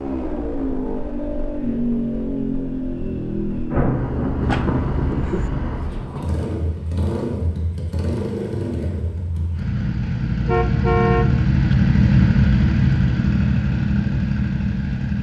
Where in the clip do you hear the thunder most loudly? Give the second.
4 s.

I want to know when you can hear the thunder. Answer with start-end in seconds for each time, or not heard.
3.7-6.3.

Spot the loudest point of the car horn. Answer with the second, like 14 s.
11 s.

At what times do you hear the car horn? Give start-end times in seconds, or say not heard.
4.4-6.1, 10.4-11.8.